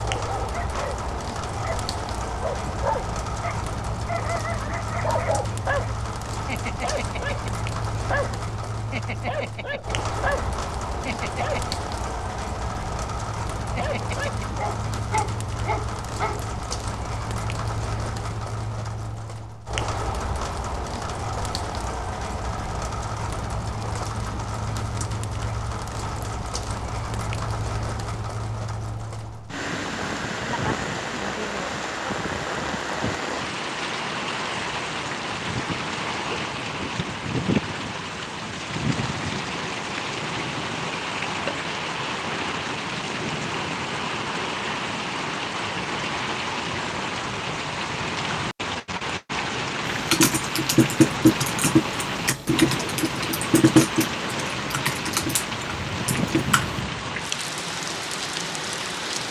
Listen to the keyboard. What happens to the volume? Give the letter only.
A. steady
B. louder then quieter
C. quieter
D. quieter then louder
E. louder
C.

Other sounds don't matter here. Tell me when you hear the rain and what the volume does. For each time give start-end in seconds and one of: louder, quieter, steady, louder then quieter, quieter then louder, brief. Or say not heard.
0.0-59.2 steady.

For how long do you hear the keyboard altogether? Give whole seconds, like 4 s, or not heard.
7 s.